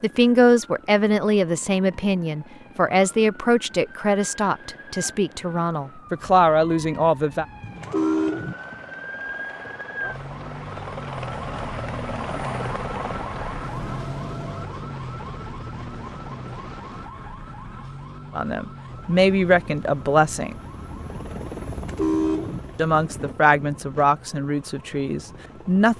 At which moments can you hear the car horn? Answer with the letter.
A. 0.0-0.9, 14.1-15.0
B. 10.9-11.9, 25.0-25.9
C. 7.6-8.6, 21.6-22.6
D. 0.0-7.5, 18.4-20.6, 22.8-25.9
C.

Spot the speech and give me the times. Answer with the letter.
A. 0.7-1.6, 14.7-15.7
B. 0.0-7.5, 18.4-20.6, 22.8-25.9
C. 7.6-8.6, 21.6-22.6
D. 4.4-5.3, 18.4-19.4
B.